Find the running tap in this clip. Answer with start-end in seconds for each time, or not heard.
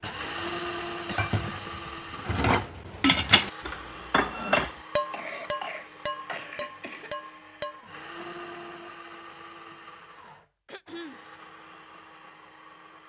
not heard.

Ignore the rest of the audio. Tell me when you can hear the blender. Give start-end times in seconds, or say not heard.
0.0-13.0.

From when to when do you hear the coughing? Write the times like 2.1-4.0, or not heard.
0.9-1.9, 5.1-7.1, 10.7-11.2.